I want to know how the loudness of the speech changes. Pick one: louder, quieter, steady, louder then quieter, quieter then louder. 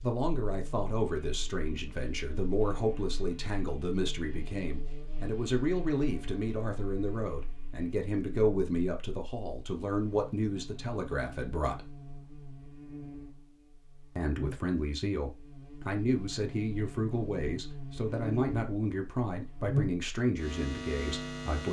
steady.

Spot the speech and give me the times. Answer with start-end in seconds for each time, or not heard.
0.0-11.8, 14.2-21.6.